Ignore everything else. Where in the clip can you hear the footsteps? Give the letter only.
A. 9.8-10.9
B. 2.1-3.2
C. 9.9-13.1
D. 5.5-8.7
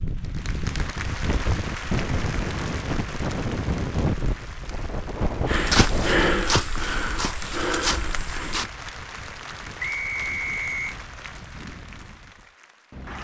D.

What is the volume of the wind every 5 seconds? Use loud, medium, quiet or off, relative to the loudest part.
loud, loud, quiet.